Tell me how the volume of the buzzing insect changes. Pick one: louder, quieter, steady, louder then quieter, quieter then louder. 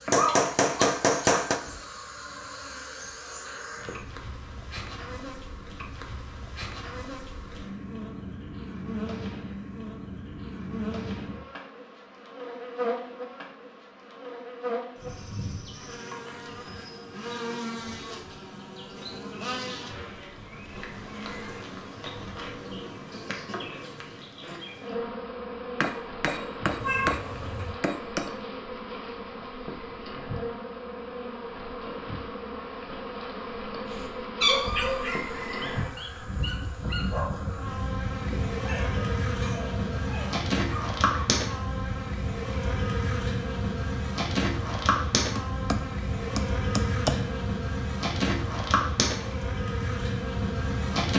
louder.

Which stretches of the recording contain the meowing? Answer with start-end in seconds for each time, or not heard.
0.1-0.9, 26.8-27.8, 34.4-35.0.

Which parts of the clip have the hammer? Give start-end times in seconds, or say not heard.
0.1-1.6, 25.8-28.3, 45.4-47.2.